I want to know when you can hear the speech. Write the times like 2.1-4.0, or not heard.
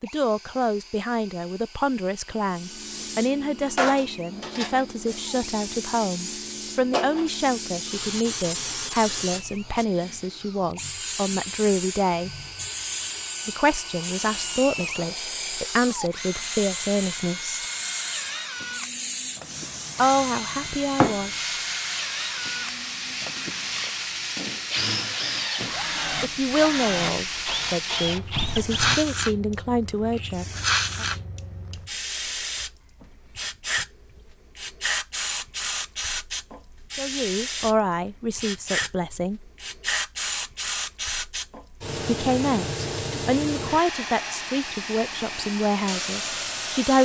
0.0-12.3, 13.4-17.6, 19.9-21.4, 26.2-31.1, 37.0-39.5, 42.0-47.0.